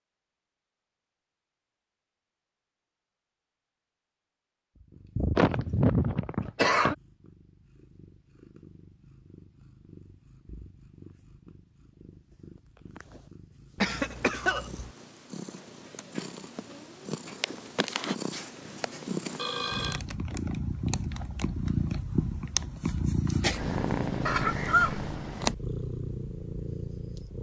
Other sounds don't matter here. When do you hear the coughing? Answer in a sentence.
You can hear the coughing from 5.3 to 7.0 s, from 13.8 to 14.9 s and from 24.2 to 25.1 s.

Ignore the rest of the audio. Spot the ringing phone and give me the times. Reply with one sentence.
The ringing phone can be heard from 19.4 to 20.0 s.